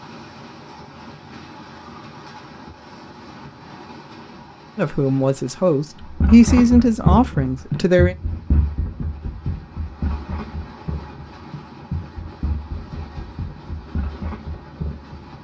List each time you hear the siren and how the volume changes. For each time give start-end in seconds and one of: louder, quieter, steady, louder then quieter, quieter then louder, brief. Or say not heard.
not heard.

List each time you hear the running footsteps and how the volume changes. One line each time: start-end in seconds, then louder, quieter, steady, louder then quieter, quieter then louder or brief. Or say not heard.
6.0-15.3 quieter.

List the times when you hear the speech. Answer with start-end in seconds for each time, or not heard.
4.8-8.2.